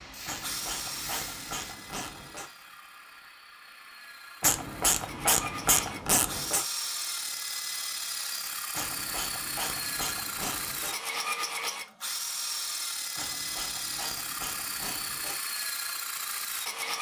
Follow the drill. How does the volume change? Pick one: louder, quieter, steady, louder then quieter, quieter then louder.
louder.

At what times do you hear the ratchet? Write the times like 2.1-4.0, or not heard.
0.2-2.5, 4.4-6.7, 8.8-10.9, 13.2-15.4.